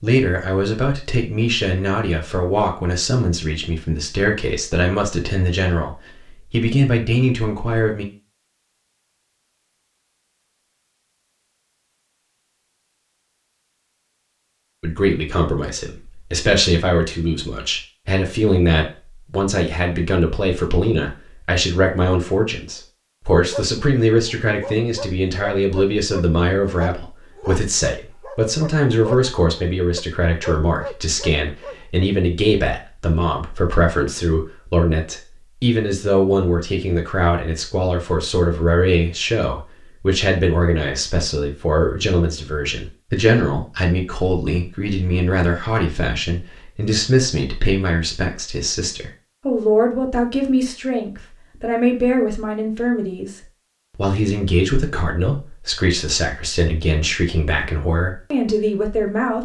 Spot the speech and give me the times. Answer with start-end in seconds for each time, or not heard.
0.0-8.1, 14.8-59.4.